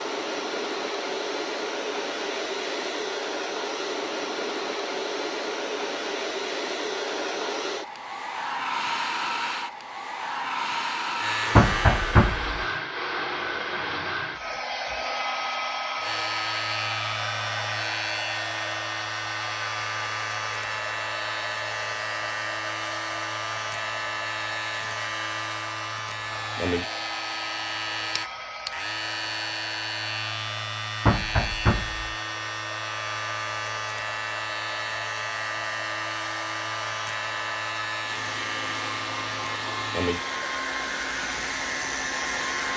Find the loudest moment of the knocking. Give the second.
12 s.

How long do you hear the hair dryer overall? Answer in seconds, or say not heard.
43 s.